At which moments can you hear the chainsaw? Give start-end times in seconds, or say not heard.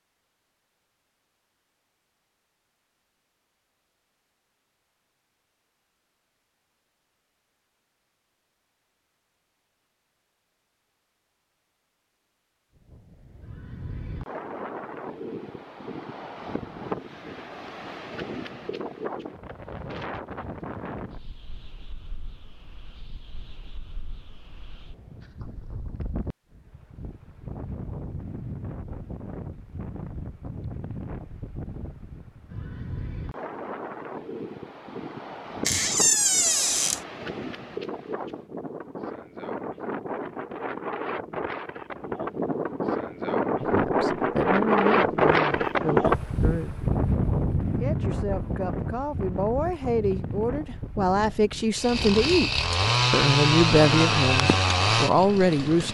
51.8-55.8.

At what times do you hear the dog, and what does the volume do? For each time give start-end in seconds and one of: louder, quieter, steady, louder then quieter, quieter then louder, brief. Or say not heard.
not heard.